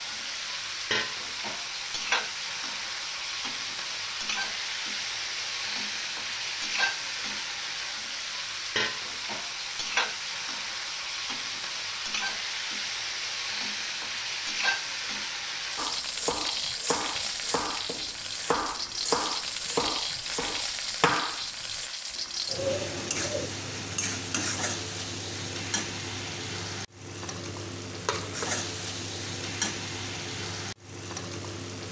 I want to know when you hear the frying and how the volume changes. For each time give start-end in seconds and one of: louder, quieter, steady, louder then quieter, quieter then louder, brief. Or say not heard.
0.0-31.8 steady.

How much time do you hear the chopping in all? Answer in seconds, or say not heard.
6 s.